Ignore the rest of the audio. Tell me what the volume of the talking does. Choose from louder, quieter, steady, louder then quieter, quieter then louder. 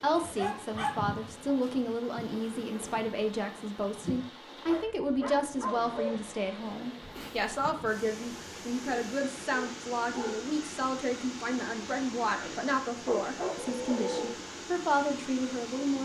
steady.